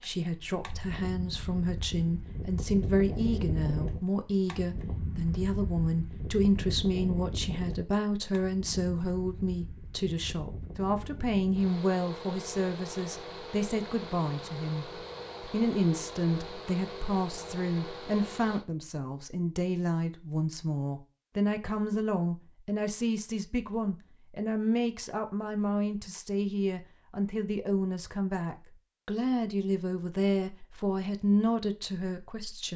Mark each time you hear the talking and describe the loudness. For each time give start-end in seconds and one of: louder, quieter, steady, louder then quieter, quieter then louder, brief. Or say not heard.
0.0-32.7 steady.